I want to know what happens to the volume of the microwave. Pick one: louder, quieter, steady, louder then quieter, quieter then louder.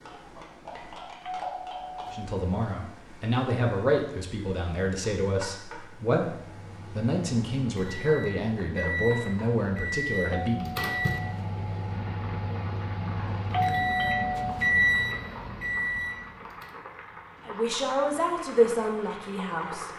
louder.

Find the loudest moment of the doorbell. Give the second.
14 s.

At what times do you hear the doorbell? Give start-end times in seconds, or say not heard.
1.2-2.3, 10.3-11.4, 13.5-14.7.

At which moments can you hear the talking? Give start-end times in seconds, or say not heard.
2.1-10.8, 17.4-19.9.